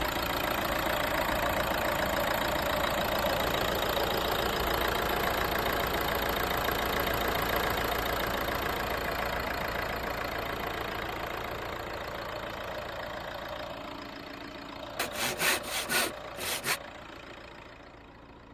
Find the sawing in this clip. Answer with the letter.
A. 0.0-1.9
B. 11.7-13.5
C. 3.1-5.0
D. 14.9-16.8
D.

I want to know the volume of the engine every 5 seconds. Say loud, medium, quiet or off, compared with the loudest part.
loud, loud, medium, quiet.